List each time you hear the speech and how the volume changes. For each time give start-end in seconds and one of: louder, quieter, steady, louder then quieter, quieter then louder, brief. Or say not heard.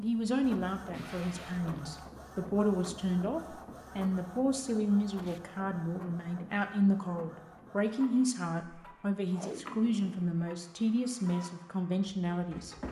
0.0-12.8 steady.